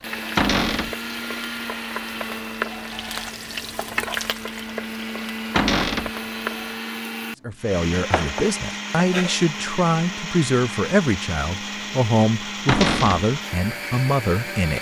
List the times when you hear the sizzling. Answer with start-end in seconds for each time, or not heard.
0.0-6.8.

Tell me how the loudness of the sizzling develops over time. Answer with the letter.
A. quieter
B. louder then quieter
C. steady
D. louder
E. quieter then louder
B.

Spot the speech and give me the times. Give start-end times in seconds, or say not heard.
7.5-14.7.